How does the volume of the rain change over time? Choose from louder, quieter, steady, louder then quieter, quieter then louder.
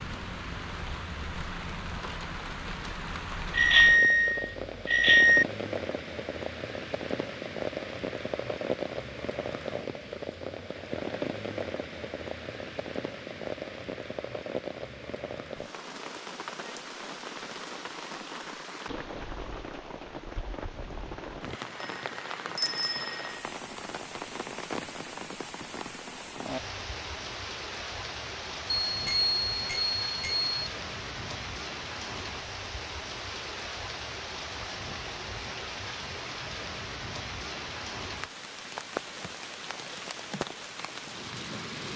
steady.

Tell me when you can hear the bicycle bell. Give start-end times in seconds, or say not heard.
3.5-5.5, 22.6-23.2, 28.9-30.5.